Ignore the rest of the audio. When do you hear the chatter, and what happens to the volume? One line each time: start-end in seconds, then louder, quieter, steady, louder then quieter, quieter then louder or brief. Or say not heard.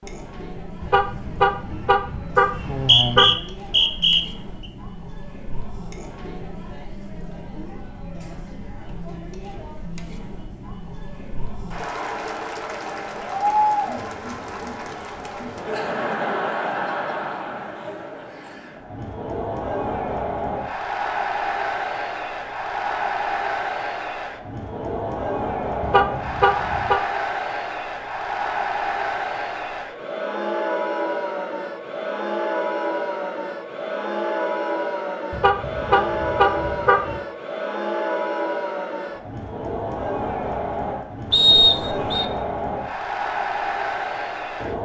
0.0-44.8 louder.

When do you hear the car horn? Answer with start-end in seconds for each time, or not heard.
0.8-3.4, 25.8-27.0, 35.3-37.2.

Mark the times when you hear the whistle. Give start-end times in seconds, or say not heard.
2.6-4.2, 41.3-42.2.